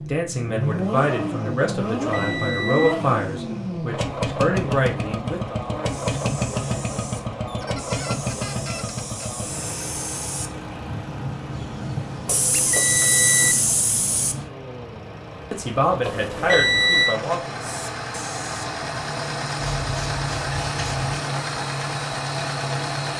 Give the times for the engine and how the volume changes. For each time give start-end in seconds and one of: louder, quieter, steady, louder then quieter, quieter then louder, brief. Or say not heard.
0.0-23.1 quieter then louder.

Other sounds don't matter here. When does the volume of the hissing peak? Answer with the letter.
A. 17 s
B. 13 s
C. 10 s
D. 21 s
B.